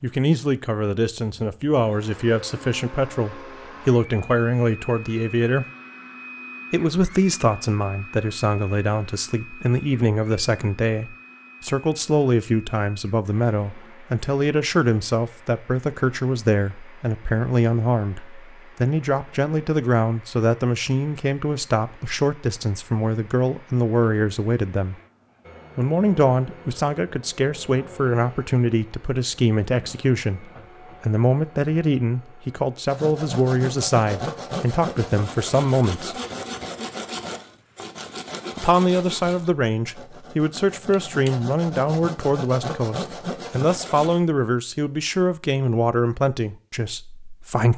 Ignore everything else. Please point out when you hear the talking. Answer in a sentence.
The talking can be heard from 0.0 to 5.7 s, from 6.7 to 24.9 s, from 25.8 to 36.2 s and from 38.5 to 47.7 s.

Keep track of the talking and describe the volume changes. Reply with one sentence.
The volume of the talking stays about the same.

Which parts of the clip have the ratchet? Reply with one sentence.
The ratchet can't be heard in this clip.